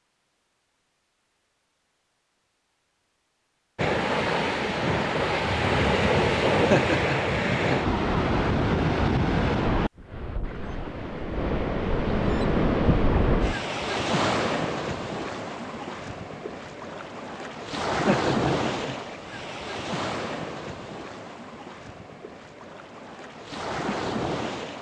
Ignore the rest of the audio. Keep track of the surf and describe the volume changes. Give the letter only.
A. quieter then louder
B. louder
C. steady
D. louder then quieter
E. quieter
E.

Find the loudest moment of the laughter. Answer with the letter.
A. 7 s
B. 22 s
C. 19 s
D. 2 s
A.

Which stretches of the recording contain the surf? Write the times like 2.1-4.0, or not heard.
3.8-24.7.